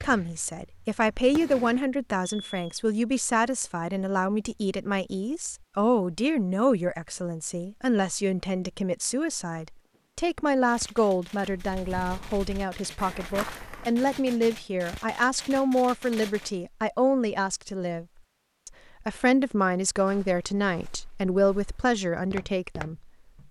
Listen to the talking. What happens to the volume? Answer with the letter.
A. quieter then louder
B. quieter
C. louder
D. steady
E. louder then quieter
D.